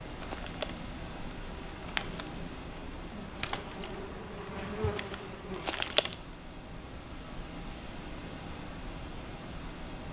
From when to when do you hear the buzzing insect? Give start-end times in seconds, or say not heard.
0.0-6.2.